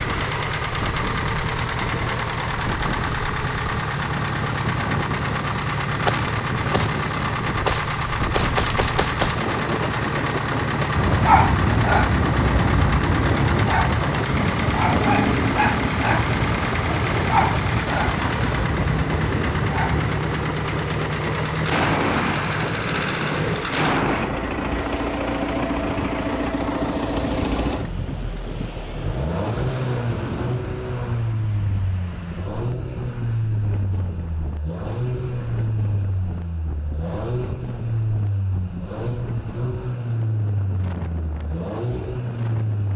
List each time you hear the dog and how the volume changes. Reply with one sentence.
The dog can be heard from 10.9 to 20.1 s, getting quieter.